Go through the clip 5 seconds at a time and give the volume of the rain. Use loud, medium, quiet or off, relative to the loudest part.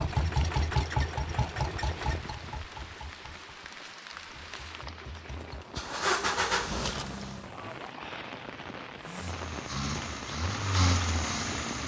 medium, loud, loud.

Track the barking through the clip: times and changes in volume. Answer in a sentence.
You can't hear the barking here.